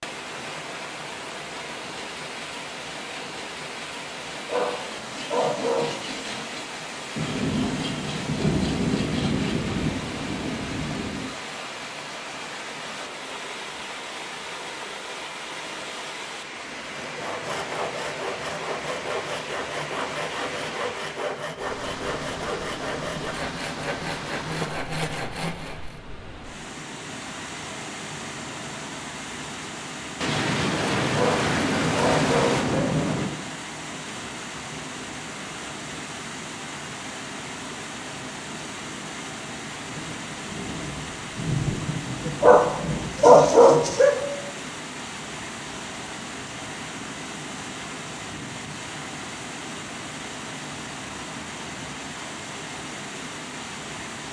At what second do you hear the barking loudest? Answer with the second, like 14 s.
43 s.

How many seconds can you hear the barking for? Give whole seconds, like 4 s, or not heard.
5 s.